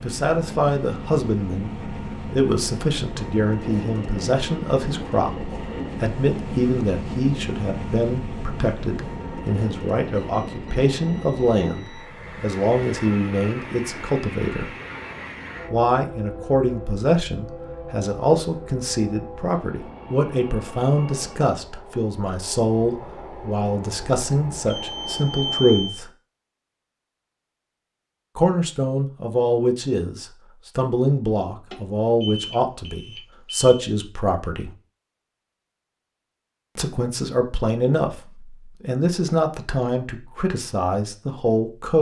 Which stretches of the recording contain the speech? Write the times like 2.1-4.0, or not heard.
0.0-14.7, 15.7-26.1, 28.4-34.7, 36.8-41.9.